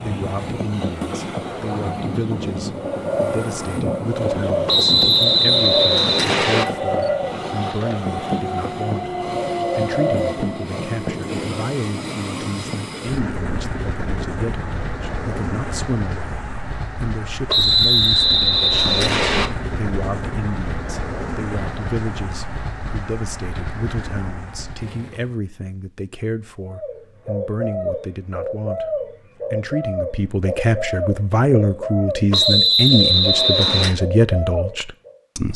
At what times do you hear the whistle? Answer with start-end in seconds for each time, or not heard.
4.7-6.7, 17.4-19.5, 32.3-34.0.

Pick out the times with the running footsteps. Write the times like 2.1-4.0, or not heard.
not heard.